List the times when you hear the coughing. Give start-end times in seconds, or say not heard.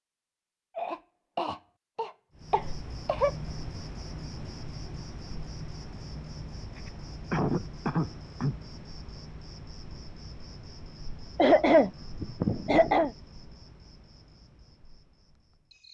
0.8-3.3, 6.8-8.7, 11.3-13.1.